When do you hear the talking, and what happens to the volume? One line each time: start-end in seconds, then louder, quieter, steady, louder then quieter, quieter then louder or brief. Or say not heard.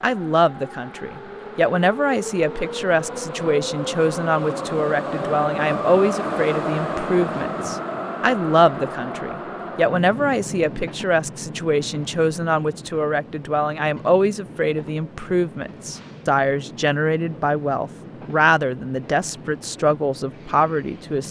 0.0-21.2 steady.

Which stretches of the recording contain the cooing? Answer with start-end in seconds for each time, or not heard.
not heard.